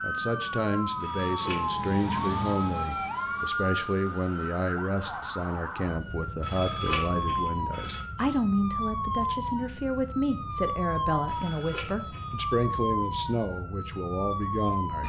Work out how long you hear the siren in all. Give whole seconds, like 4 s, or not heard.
15 s.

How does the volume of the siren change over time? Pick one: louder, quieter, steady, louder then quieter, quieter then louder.
steady.